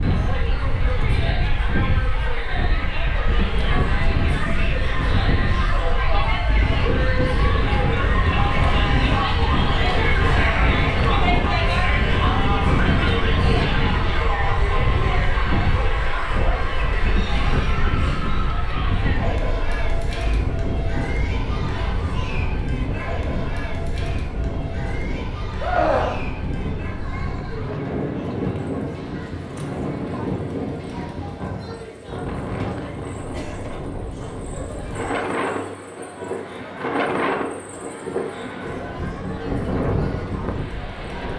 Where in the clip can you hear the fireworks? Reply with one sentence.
You can't hear the fireworks here.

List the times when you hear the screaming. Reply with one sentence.
The screaming can be heard from 25.6 to 26.8 s.